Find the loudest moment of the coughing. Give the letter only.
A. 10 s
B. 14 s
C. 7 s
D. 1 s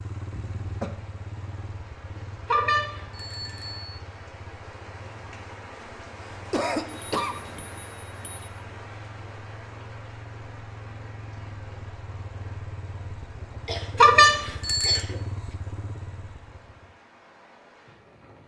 C.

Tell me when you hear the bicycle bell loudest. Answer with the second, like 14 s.
14 s.